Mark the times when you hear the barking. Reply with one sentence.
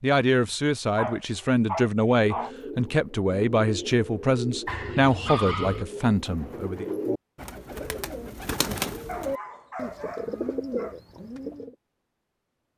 You can hear the barking from 0.9 to 2.5 s, from 4.7 to 5.8 s and from 9.1 to 10.9 s.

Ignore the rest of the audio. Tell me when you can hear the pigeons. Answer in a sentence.
You can hear the pigeons from 2.2 to 11.8 s.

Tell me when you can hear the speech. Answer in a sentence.
The speech can be heard from 0.0 to 6.9 s.